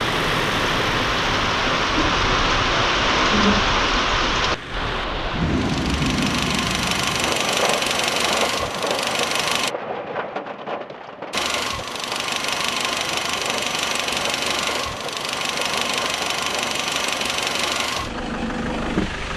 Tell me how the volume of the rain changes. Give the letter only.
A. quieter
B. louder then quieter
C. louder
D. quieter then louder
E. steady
A.